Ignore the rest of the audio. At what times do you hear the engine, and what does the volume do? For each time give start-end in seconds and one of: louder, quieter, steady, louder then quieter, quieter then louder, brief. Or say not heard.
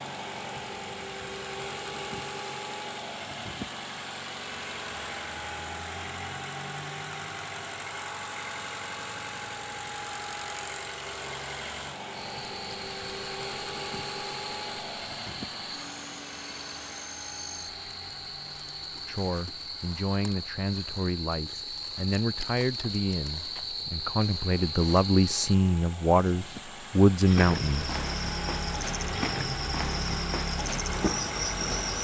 0.0-32.0 quieter then louder.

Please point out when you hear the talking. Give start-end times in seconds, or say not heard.
19.1-27.9.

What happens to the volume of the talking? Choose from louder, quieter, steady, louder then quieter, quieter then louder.
louder.